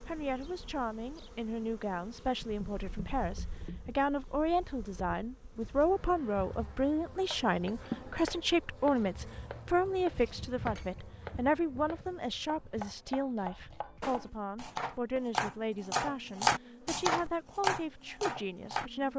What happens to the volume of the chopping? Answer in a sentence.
The loudness of the chopping goes up.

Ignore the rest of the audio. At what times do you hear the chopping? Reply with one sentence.
The chopping can be heard from 7.1 to 18.9 s.